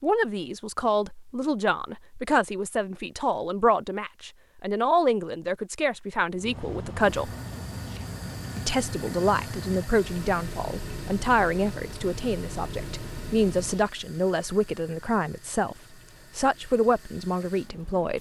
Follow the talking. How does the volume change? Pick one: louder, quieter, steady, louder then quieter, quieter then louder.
steady.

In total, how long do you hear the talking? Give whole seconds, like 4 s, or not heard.
17 s.